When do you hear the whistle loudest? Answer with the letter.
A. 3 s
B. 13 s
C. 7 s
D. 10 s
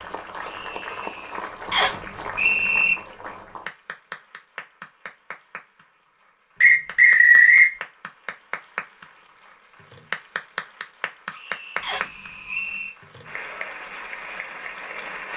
C.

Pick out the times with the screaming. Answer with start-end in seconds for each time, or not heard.
0.4-1.4, 11.3-12.7.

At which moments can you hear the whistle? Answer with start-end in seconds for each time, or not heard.
1.7-3.0, 6.6-7.7, 11.8-12.9.